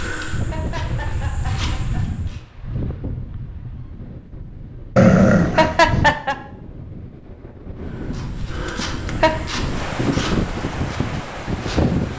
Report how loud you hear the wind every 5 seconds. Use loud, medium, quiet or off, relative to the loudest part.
medium, medium, loud.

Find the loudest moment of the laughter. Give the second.
6 s.